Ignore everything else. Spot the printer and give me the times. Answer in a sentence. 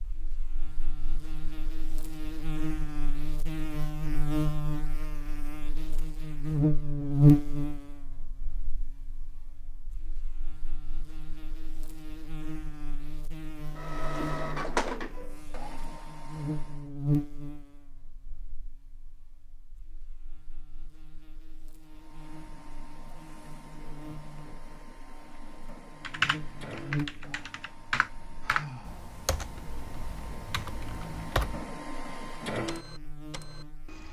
The printer can be heard from 13.8 to 16.9 s and from 21.9 to 34.0 s.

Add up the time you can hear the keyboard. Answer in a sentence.
You can hear the keyboard for 6 seconds altogether.